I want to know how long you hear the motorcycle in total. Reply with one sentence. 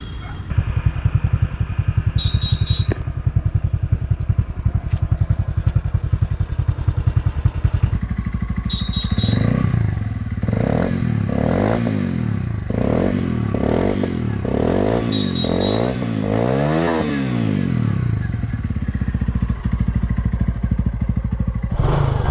The motorcycle can be heard for 22 seconds in total.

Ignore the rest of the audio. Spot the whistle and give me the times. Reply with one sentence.
You can hear the whistle from 2.1 to 3.0 s, from 8.7 to 9.6 s and from 15.1 to 15.9 s.